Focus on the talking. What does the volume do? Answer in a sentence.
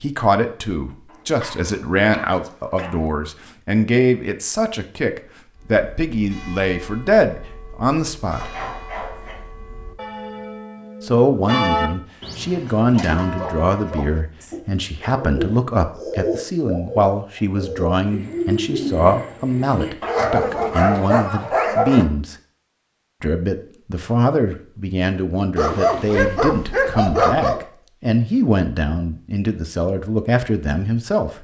The volume of the talking stays about the same.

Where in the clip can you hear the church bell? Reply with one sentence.
You can hear the church bell from 5.5 to 14.6 s.